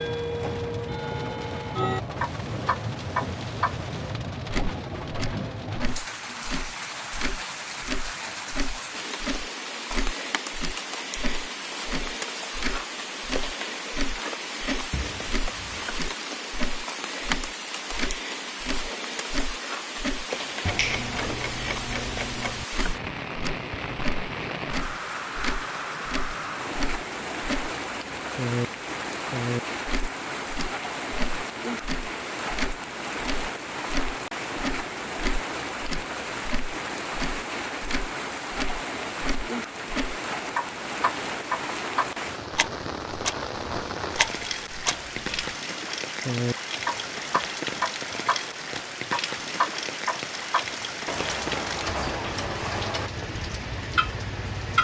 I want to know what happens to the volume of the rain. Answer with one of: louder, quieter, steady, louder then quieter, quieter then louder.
steady.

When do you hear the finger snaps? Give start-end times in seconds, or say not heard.
20.3-21.1.